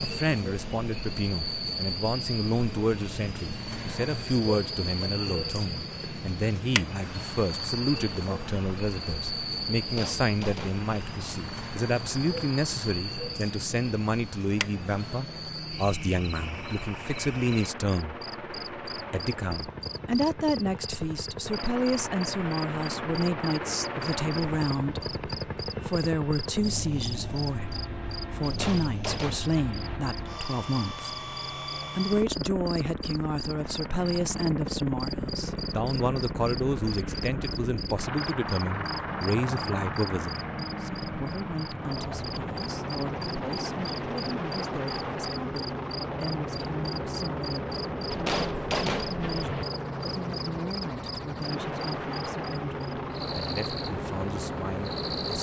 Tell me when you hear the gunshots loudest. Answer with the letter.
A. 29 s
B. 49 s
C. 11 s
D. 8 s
B.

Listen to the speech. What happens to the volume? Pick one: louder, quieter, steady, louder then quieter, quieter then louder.
quieter.